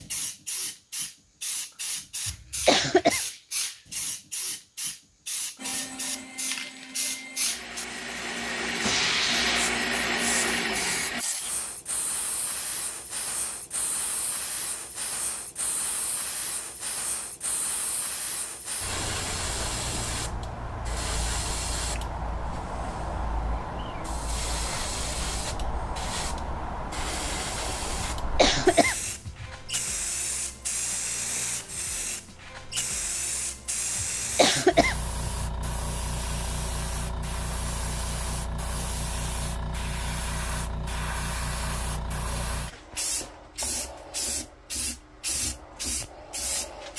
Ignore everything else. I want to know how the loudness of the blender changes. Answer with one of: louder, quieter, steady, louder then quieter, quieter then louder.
louder.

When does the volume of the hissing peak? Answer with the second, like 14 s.
9 s.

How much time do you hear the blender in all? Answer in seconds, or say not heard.
6 s.